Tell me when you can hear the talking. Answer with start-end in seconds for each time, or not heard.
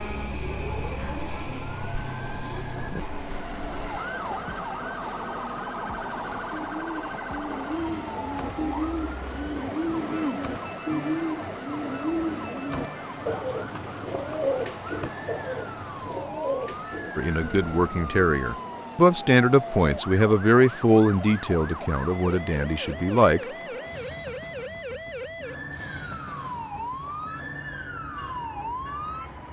17.1-23.4.